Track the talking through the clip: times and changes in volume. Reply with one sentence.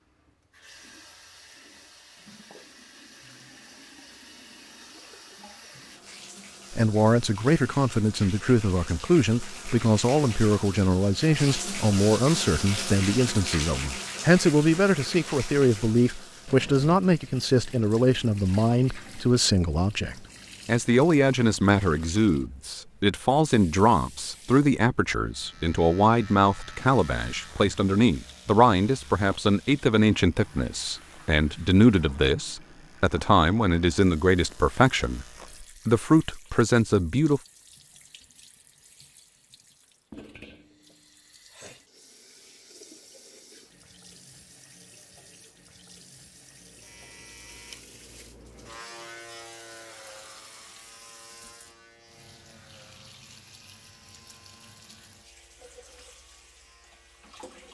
You can hear the talking from 6.7 to 37.4 s, at a steady volume.